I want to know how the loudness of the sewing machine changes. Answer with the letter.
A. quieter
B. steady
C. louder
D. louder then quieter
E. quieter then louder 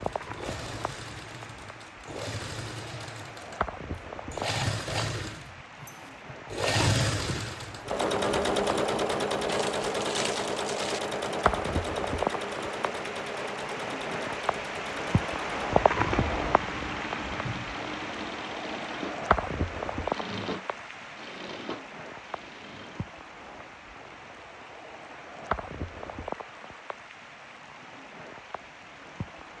D.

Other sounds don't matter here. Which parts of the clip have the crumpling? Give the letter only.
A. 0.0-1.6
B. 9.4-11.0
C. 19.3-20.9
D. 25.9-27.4
B.